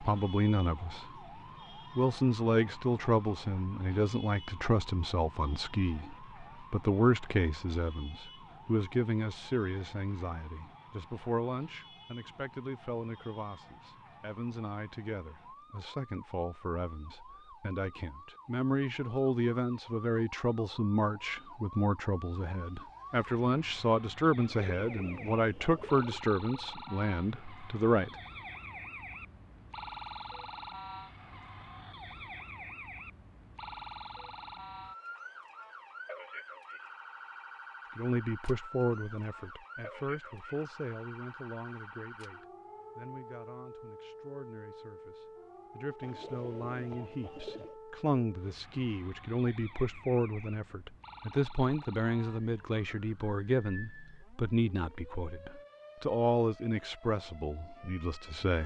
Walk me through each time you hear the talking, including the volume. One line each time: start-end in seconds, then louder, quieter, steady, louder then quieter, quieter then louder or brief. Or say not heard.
0.0-1.1 brief
1.9-28.1 quieter then louder
38.0-58.6 quieter then louder.